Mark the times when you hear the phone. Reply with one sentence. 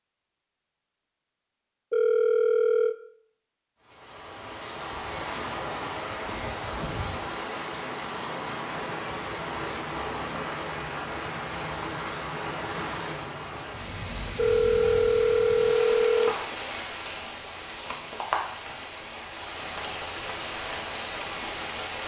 You can hear the phone from 1.9 to 3.0 s and from 14.3 to 16.4 s.